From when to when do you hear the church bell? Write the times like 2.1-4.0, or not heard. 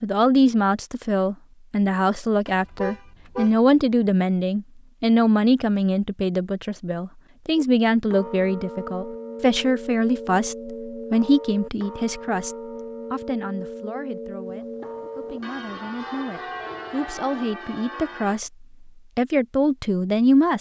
7.5-18.4.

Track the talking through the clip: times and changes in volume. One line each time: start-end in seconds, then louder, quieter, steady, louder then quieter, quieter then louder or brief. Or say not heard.
0.0-20.5 quieter then louder.